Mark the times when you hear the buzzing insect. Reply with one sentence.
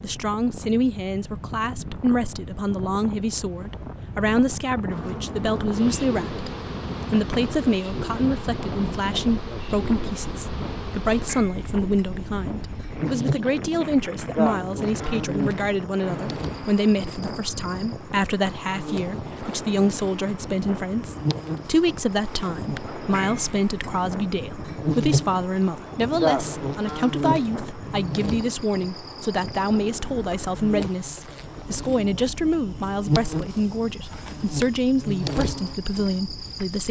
The buzzing insect can be heard from 4.9 to 36.8 s.